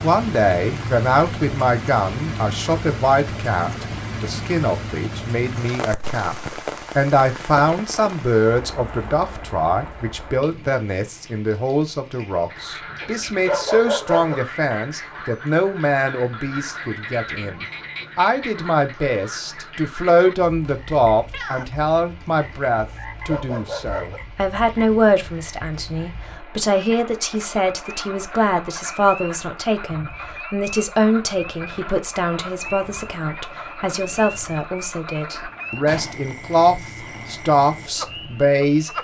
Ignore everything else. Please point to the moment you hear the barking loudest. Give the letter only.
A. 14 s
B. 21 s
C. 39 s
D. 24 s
A.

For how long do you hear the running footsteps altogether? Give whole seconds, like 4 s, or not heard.
not heard.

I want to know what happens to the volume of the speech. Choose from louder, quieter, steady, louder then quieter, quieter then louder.
steady.